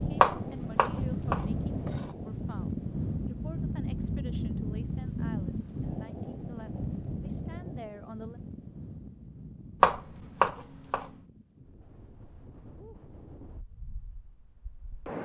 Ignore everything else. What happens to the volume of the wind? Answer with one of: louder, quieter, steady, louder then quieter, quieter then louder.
quieter.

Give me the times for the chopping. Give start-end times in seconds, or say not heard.
0.2-2.1, 9.8-11.1.